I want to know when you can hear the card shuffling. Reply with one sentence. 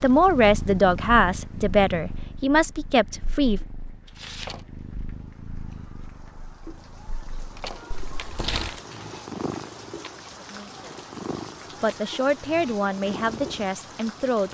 The card shuffling can be heard from 4.0 to 4.6 s and from 8.0 to 8.8 s.